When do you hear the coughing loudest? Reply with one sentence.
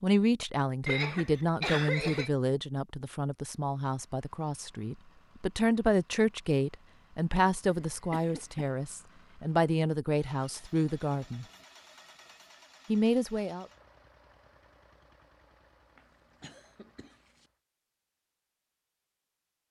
The loudest moment of the coughing is at 2 seconds.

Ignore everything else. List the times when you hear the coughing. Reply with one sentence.
You can hear the coughing from 0.8 to 2.3 s, from 7.7 to 8.7 s and from 15.9 to 17.4 s.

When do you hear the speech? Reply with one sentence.
The speech can be heard from 0.0 to 11.4 s and from 12.8 to 13.7 s.